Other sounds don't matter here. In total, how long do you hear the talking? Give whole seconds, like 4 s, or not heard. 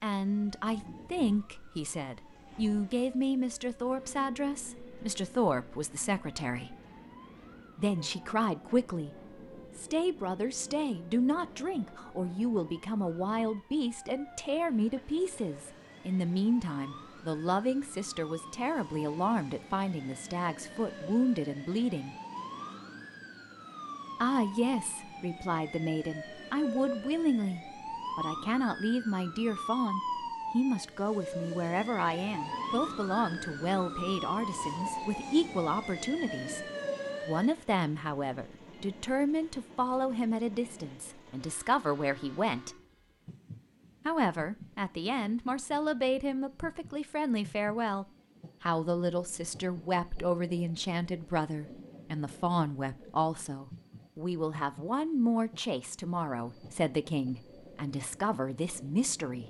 54 s.